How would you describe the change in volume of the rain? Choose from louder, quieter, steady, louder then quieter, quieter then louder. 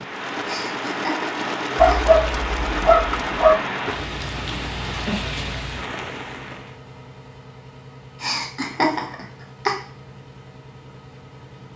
steady.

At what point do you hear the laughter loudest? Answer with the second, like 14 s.
9 s.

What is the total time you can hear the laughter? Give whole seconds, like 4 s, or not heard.
3 s.